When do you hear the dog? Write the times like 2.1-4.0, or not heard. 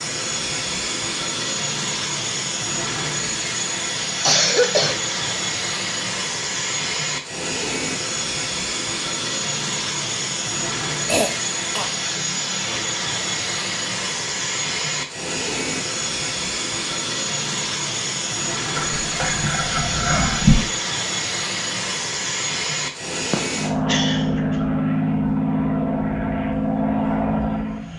18.8-20.6.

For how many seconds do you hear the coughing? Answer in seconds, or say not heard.
3 s.